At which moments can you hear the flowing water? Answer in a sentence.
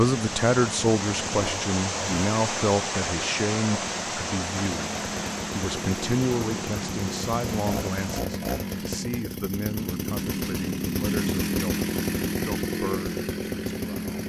The flowing water can be heard from 0.0 to 8.2 s.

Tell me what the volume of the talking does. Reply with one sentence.
The loudness of the talking goes down.